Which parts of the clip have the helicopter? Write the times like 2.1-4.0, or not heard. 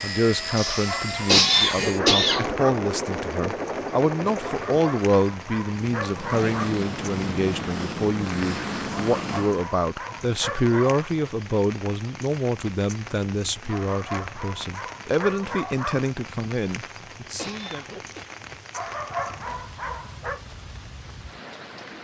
0.0-9.7.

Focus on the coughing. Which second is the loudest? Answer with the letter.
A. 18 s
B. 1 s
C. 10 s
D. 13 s
B.